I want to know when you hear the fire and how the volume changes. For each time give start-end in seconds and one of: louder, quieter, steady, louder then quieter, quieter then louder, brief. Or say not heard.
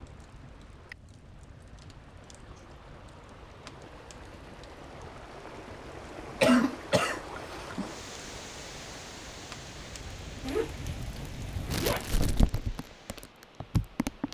0.0-14.2 louder.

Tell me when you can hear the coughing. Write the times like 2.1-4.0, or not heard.
6.4-7.8.